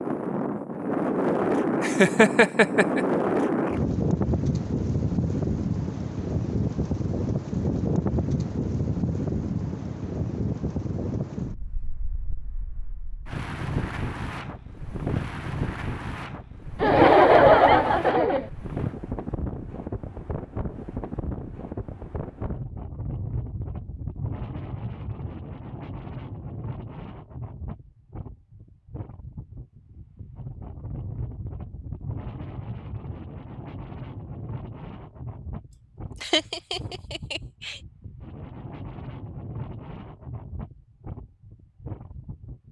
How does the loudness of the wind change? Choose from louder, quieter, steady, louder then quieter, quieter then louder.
quieter.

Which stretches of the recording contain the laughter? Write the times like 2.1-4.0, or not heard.
1.8-3.0, 16.8-18.5, 36.2-37.8.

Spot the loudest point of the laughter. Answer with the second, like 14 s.
17 s.